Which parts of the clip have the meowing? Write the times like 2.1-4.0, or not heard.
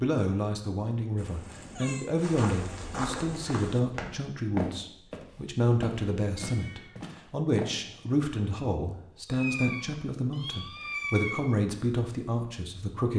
1.1-2.1, 6.3-7.0, 9.2-11.5.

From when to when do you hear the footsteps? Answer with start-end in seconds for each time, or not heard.
2.1-7.7.